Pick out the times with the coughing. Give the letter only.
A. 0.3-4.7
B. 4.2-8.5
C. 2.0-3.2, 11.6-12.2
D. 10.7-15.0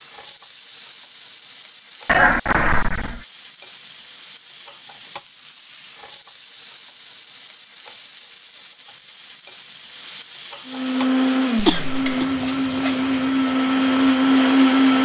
C.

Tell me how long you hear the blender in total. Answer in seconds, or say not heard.
4 s.